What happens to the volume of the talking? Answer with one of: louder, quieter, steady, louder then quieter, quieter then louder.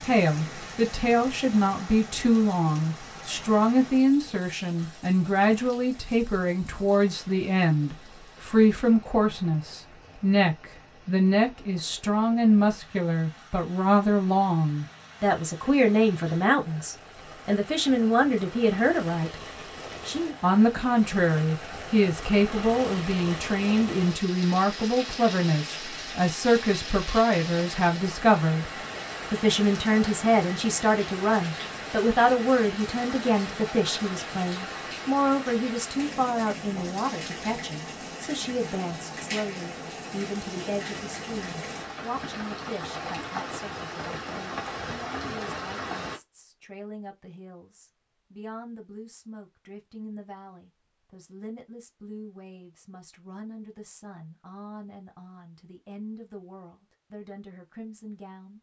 quieter.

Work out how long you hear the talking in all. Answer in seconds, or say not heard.
58 s.